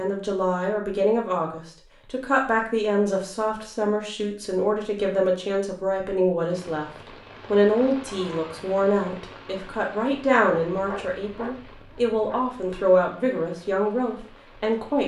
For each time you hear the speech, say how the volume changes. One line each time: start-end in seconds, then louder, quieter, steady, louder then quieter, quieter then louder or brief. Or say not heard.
0.0-15.0 steady.